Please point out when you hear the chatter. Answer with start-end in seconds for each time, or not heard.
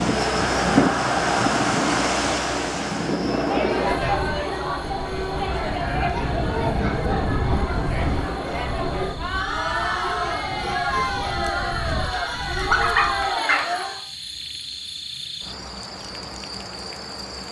0.1-14.0.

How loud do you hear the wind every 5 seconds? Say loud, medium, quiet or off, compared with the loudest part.
loud, medium, quiet, off.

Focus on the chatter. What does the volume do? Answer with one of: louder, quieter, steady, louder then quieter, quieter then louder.
steady.